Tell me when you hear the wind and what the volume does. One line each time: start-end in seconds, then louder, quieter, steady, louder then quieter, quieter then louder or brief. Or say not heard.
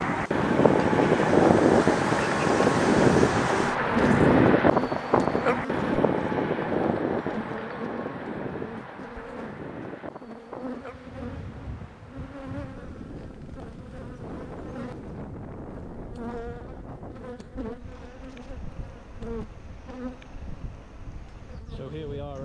0.0-22.3 quieter.